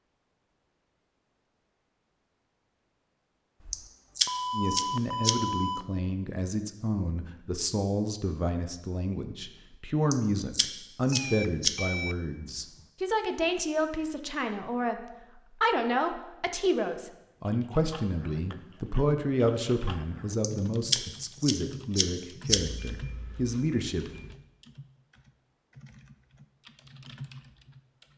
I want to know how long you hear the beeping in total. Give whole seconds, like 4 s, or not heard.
6 s.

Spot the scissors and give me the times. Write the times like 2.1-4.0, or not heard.
3.7-5.3, 10.1-11.8, 20.4-22.6.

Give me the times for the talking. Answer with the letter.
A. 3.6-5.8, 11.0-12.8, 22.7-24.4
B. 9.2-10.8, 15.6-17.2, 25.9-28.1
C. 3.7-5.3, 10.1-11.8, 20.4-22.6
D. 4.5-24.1
D.